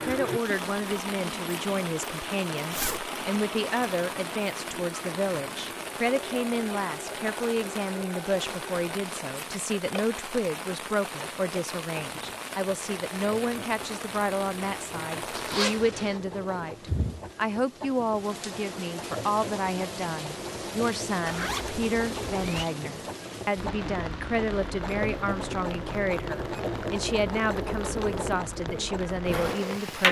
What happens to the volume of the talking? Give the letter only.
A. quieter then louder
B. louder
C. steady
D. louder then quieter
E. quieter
C.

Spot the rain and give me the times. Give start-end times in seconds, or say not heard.
0.0-30.0.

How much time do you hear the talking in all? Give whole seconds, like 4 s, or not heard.
30 s.